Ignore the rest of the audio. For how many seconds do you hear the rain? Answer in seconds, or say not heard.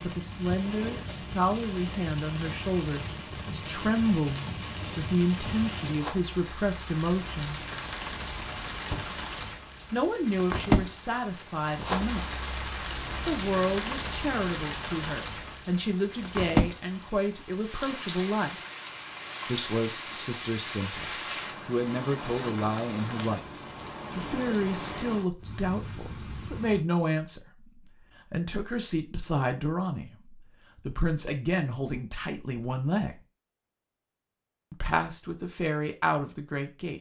27 s.